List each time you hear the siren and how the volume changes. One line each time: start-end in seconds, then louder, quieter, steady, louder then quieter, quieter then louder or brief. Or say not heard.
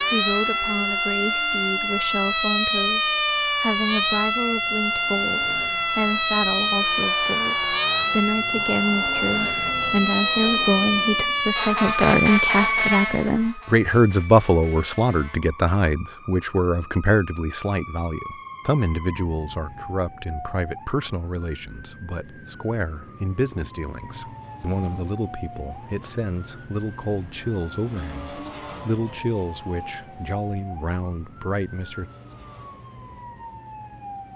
0.0-34.3 quieter.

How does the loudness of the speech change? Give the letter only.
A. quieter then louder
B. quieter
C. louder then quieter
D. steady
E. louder
C.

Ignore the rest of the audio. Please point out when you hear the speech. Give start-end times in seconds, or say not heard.
0.0-32.1.